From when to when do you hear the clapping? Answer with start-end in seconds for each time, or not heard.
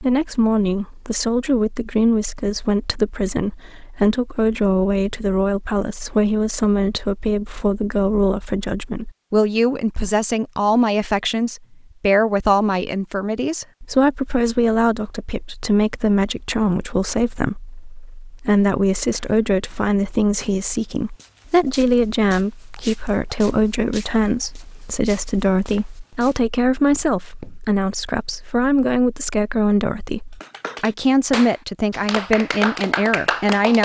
30.4-33.8.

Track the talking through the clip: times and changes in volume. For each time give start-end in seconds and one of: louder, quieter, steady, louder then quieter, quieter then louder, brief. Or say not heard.
0.0-33.8 steady.